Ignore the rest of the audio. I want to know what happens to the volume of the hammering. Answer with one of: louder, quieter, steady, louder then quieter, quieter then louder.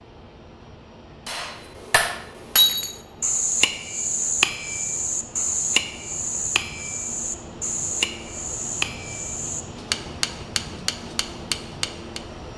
quieter.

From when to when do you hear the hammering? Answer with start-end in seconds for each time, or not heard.
1.2-12.2.